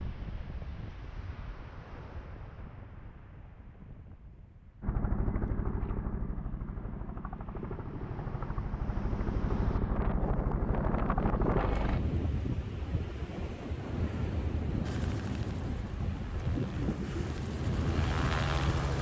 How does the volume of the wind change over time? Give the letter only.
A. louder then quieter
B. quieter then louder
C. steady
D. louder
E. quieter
B.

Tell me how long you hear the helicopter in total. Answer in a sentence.
You can hear the helicopter for 11 seconds altogether.